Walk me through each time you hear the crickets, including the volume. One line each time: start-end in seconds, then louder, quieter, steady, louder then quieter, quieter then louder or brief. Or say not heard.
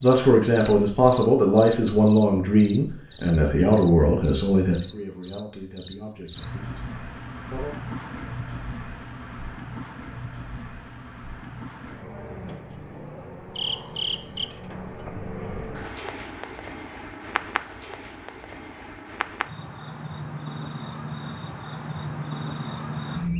0.0-23.3 steady.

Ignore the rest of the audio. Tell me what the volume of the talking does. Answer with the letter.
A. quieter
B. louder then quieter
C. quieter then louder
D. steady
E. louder
A.